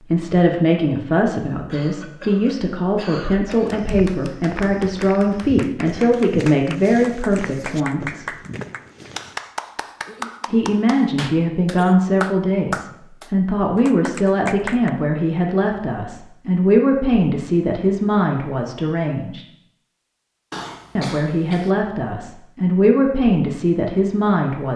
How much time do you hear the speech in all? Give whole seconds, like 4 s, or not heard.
21 s.